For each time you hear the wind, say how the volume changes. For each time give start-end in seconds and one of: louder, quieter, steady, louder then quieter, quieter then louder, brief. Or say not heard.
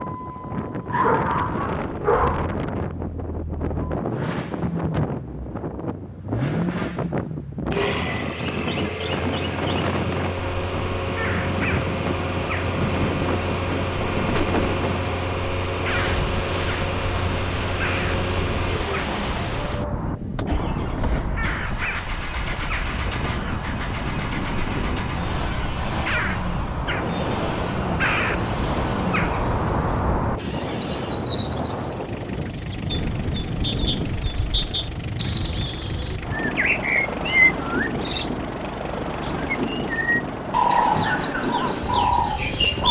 0.0-42.8 steady.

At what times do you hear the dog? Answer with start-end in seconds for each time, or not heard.
0.9-2.5.